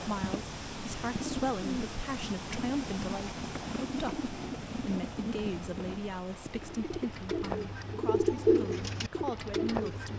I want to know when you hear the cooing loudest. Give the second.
8 s.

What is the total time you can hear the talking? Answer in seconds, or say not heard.
10 s.